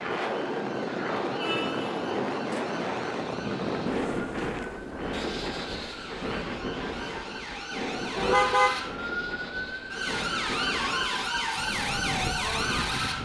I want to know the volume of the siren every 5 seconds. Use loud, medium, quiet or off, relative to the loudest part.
quiet, medium, loud.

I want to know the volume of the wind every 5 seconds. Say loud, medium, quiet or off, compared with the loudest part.
loud, medium, medium.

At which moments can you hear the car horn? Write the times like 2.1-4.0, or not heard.
1.4-1.9, 8.2-8.8.